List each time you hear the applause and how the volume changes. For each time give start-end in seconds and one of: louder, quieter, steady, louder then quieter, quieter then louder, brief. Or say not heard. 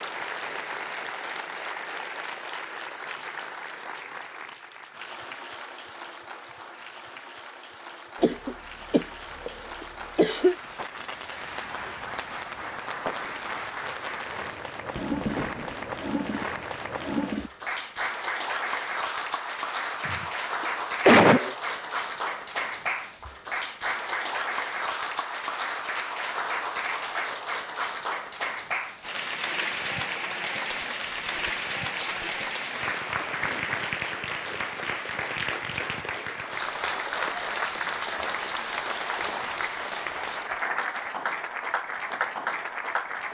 0.0-43.3 louder.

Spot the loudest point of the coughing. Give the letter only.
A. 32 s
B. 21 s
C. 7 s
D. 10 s
B.